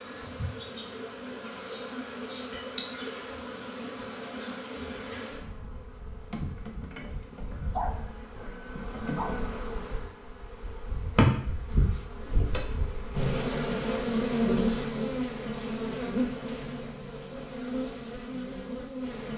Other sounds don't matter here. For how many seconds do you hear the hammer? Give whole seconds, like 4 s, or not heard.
not heard.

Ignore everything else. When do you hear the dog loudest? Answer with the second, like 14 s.
8 s.